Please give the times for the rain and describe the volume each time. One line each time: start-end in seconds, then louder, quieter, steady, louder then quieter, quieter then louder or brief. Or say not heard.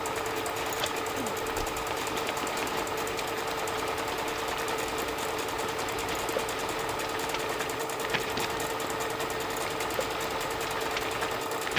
0.0-11.7 steady.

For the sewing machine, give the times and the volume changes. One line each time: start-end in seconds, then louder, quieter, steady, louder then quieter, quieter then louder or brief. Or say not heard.
0.0-11.7 steady.